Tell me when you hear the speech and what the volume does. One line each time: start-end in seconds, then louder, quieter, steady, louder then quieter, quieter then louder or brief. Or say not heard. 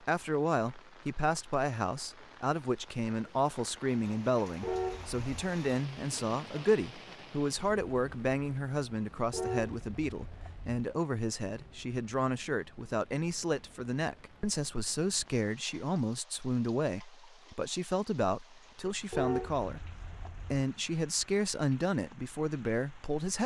0.0-23.4 steady.